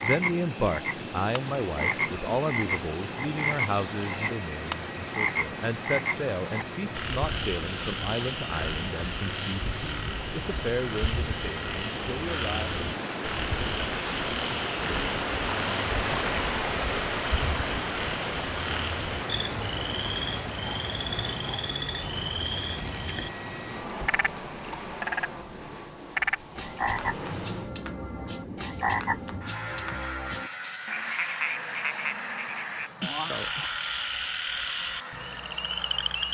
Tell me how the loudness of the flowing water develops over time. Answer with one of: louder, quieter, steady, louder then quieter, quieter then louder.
louder then quieter.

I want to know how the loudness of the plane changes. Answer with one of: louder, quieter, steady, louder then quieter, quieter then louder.
steady.